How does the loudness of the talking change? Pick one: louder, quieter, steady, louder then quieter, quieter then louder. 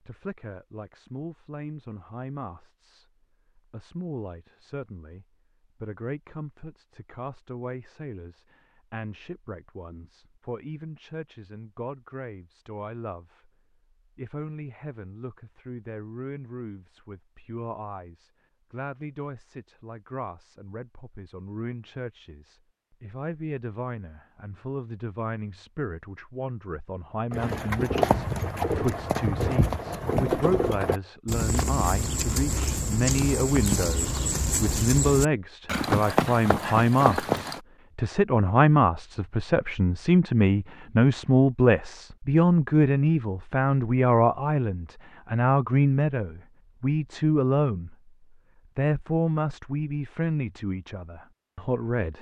louder.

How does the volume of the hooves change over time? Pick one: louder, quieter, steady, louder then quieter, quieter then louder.
steady.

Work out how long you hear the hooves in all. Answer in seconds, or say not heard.
10 s.